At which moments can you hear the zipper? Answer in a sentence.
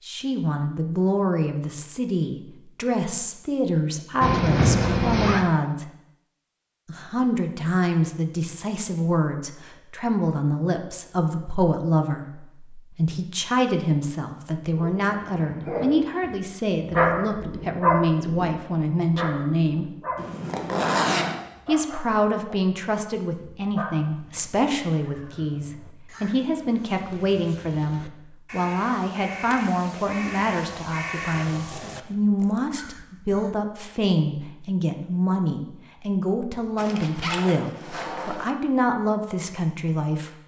You can hear the zipper from 4.2 to 5.5 s, from 20.1 to 21.4 s and from 36.8 to 38.5 s.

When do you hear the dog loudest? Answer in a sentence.
The volume of the dog peaks at 17 seconds.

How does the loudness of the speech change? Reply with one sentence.
The volume of the speech stays about the same.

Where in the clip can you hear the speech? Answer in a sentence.
The speech can be heard from 0.1 to 5.8 s, from 6.8 to 19.9 s and from 21.6 to 40.3 s.